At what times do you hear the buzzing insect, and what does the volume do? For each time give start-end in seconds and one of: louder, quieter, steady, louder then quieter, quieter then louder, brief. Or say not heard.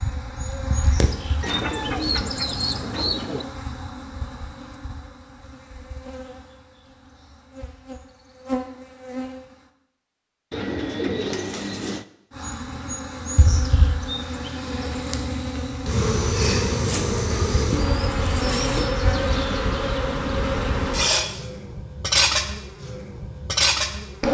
0.0-9.6 quieter then louder
12.3-24.2 louder.